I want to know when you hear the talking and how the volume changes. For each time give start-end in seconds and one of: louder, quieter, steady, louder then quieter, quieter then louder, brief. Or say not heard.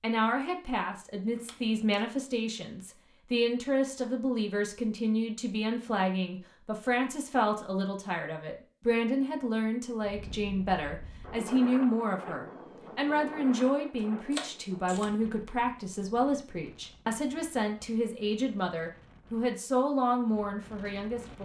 0.0-21.3 steady.